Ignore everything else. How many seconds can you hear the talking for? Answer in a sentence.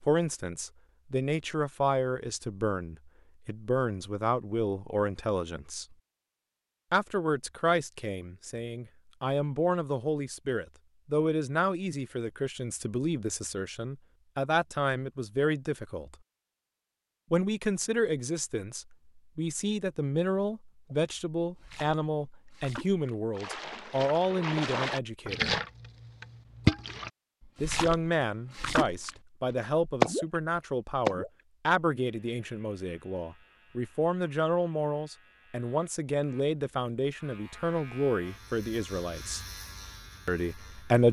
The talking can be heard for 36 seconds in total.